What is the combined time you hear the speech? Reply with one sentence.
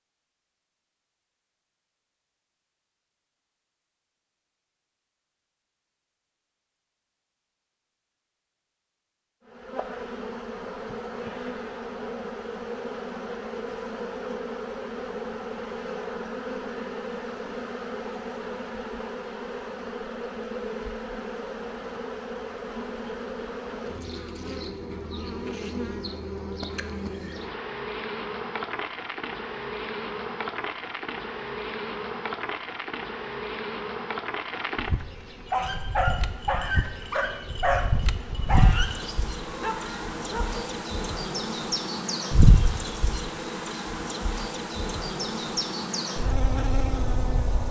You can't hear the speech here.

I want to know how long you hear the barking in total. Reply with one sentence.
You can hear the barking for 5 seconds altogether.